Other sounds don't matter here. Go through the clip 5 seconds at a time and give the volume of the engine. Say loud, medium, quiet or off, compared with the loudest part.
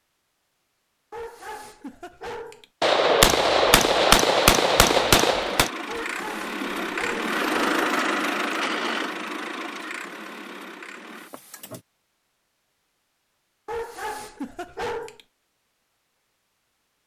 off, loud, quiet, off.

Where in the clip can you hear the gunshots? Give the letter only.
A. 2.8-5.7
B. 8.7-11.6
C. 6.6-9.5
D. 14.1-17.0
A.